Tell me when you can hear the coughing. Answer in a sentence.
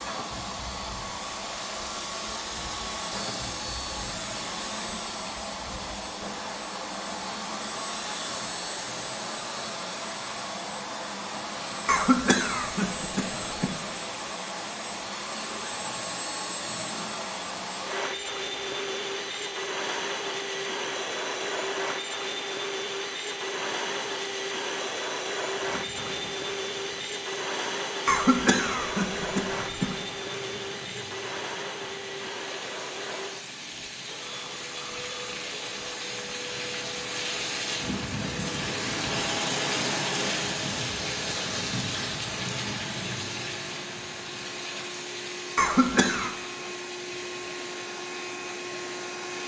The coughing can be heard from 11.8 to 13.8 s, from 28.1 to 29.9 s and from 45.5 to 46.3 s.